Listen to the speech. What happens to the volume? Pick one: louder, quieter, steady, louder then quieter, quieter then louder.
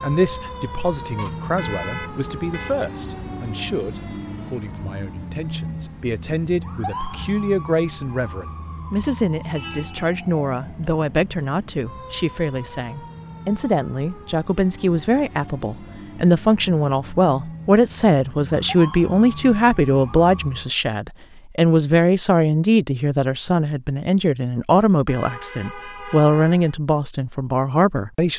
louder.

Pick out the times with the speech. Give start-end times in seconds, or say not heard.
0.0-28.3.